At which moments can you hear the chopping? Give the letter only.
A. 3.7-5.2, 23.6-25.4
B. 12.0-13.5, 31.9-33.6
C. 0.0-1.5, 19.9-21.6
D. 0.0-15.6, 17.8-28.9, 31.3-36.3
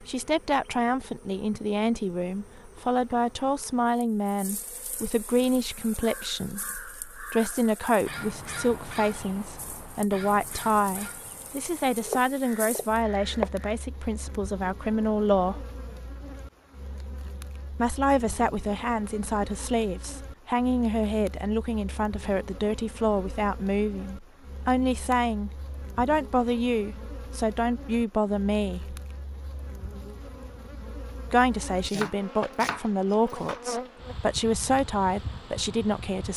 B.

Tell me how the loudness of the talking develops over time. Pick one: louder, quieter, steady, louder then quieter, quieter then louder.
steady.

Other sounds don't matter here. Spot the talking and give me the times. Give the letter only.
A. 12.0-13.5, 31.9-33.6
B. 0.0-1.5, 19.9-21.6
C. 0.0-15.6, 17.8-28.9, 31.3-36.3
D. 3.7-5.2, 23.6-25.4
C.